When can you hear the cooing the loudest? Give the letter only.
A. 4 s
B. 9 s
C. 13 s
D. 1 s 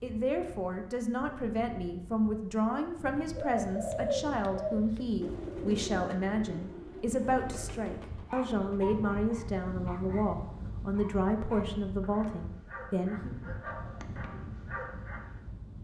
A.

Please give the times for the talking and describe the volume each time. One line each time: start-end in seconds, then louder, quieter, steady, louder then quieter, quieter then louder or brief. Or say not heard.
0.0-13.3 steady.